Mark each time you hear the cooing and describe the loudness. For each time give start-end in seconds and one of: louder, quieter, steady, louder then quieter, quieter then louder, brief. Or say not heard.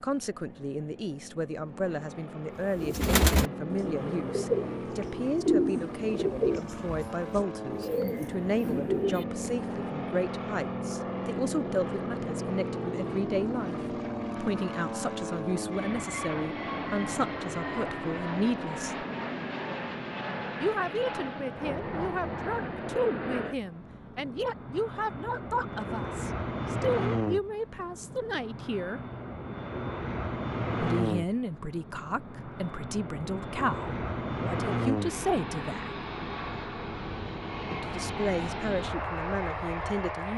2.8-9.4 quieter then louder.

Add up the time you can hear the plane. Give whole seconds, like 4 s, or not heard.
40 s.